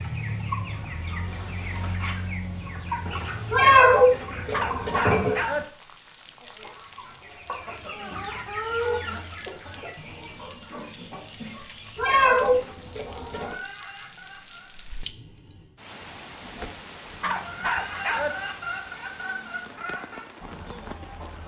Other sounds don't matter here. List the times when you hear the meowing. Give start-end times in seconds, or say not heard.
3.5-5.3, 11.9-13.6.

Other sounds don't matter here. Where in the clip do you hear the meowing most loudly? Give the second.
4 s.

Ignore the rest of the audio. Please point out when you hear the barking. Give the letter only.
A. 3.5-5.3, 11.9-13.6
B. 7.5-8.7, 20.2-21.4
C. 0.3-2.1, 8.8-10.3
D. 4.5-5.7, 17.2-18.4
D.